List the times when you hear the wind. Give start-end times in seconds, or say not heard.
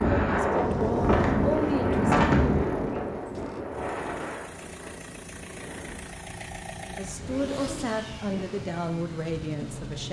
0.0-10.0.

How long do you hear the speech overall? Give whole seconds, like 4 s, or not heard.
6 s.